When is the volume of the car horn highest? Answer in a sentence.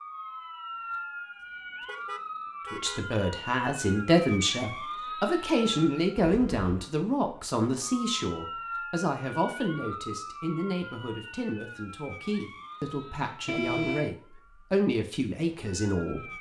The loudest moment of the car horn is at 14 seconds.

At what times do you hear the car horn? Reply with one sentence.
The car horn can be heard from 1.9 to 3.0 s, from 6.2 to 6.8 s and from 13.4 to 14.2 s.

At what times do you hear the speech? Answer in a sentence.
You can hear the speech from 2.7 to 16.3 s.